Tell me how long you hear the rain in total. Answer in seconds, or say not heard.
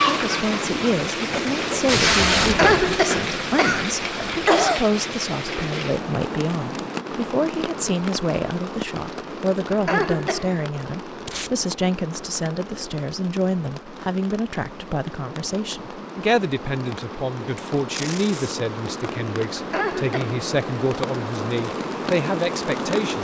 23 s.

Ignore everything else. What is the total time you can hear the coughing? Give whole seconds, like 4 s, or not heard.
4 s.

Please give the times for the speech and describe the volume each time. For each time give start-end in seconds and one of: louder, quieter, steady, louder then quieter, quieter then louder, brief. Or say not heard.
0.0-23.1 steady.